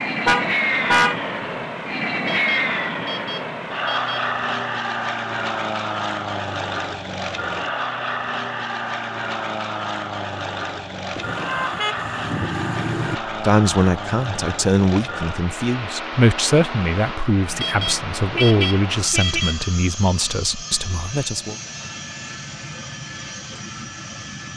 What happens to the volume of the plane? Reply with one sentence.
The volume of the plane goes down.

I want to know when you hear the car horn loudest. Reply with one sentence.
The volume of the car horn peaks at 1 second.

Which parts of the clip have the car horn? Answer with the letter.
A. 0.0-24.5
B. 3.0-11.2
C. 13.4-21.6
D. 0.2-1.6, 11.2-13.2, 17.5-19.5
D.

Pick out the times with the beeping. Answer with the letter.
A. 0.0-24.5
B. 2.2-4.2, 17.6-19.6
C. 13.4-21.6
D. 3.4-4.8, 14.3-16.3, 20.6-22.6
B.